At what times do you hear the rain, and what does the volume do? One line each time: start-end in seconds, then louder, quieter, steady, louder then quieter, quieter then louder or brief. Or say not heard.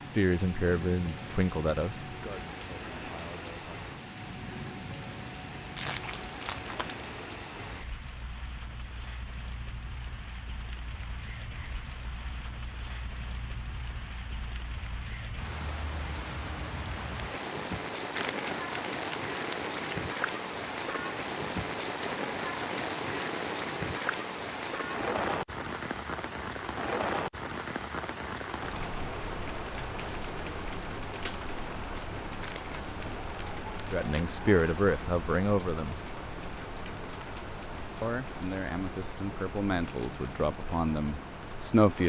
0.0-42.0 louder then quieter.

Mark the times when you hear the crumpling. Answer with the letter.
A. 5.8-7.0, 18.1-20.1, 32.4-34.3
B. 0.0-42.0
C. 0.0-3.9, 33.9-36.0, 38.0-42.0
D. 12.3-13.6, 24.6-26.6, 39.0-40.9
A.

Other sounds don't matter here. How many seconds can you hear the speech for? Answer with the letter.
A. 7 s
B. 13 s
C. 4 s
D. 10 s
D.